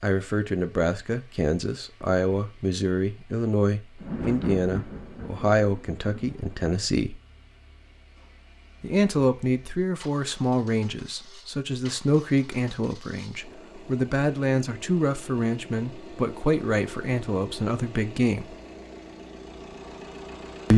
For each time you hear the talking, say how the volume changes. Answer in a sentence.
The talking can be heard from 0.0 to 7.2 s, at a steady volume; and from 8.8 to 18.5 s, at a steady volume.